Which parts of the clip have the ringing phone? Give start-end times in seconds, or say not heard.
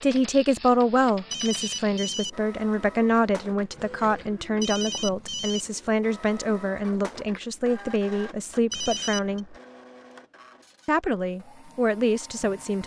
1.3-2.3, 4.6-5.7, 8.7-9.4.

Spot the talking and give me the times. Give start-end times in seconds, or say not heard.
0.0-9.6, 10.8-12.8.